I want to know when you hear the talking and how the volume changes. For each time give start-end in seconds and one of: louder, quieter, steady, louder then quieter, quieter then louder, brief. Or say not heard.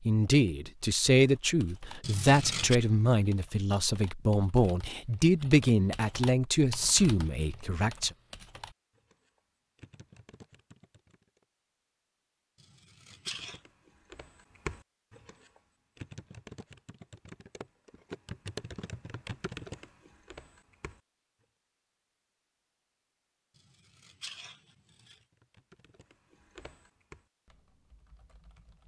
0.1-8.1 steady.